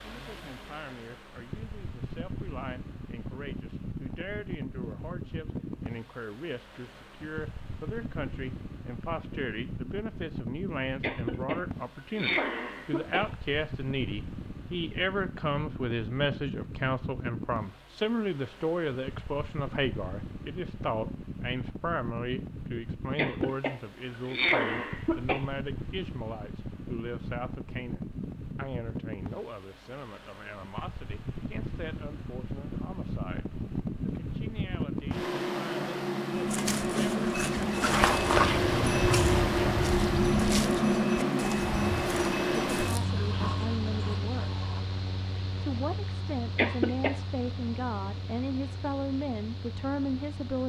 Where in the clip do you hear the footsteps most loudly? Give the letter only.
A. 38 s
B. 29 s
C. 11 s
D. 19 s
A.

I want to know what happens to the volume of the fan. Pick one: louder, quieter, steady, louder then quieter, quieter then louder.
louder.